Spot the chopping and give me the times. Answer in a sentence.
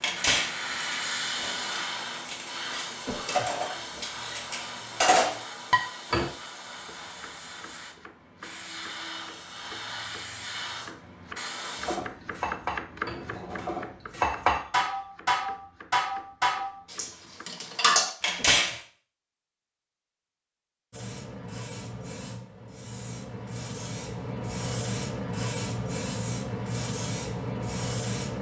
You can hear the chopping from 6.7 to 17.4 s.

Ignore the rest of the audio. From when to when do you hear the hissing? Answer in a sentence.
You can hear the hissing from 0.0 to 12.0 s and from 20.9 to 28.3 s.